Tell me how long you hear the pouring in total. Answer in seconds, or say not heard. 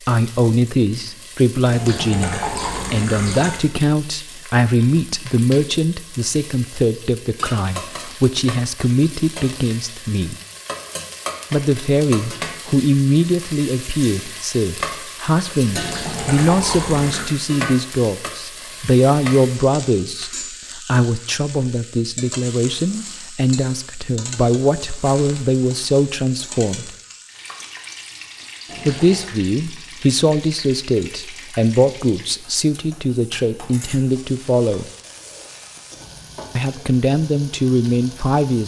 4 s.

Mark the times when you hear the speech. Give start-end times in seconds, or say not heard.
0.1-10.3, 11.5-26.9, 28.9-34.9, 36.5-38.6.